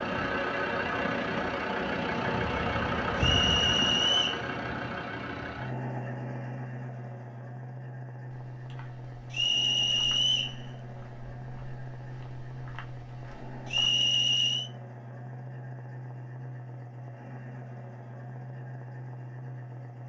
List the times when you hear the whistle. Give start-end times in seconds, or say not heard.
3.1-4.4, 9.3-10.6, 13.7-14.7.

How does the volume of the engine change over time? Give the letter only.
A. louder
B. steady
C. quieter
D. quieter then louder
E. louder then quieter
C.